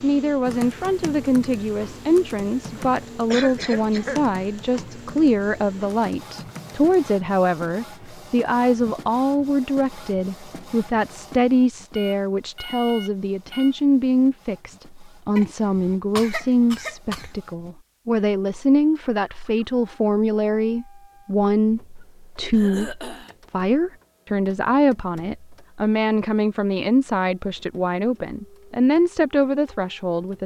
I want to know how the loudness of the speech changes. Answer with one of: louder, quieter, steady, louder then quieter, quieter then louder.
steady.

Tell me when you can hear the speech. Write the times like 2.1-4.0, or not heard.
0.0-30.4.